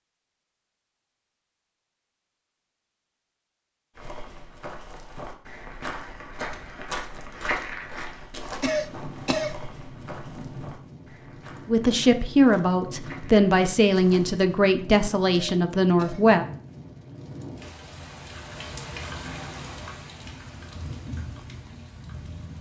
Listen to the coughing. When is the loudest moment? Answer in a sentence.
The volume of the coughing peaks at 9 seconds.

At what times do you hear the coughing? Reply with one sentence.
The coughing can be heard from 8.6 to 9.6 s and from 15.3 to 16.2 s.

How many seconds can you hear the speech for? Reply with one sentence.
You can hear the speech for 5 seconds altogether.